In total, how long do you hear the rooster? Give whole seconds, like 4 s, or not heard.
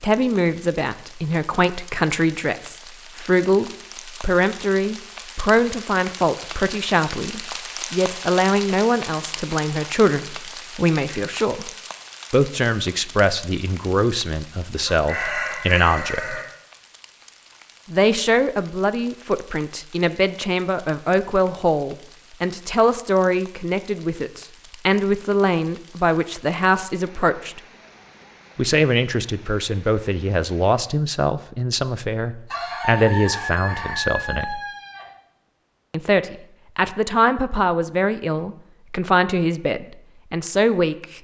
4 s.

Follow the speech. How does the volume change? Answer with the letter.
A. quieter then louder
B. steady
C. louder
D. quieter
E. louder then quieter
B.